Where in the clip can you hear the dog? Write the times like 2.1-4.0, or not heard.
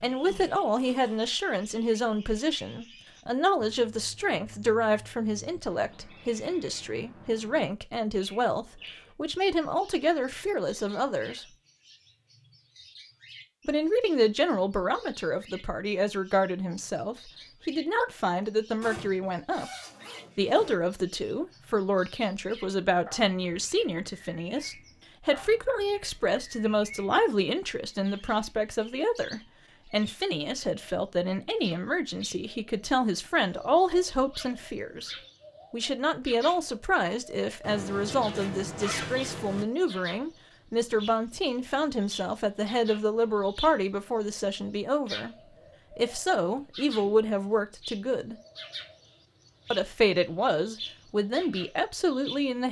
not heard.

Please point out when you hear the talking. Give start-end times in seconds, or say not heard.
0.0-11.4, 13.7-19.7, 20.4-48.4, 49.7-52.6.